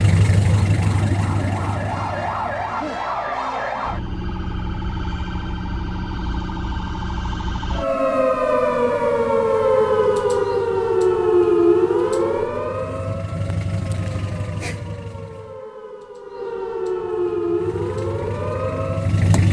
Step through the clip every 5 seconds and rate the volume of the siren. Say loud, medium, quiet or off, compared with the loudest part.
medium, loud, loud, medium.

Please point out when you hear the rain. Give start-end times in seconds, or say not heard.
not heard.